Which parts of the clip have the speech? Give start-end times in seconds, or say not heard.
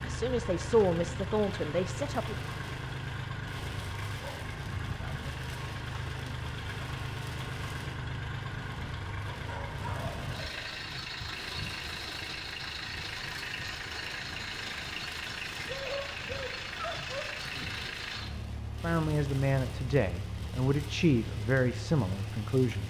0.0-2.4, 18.8-22.8.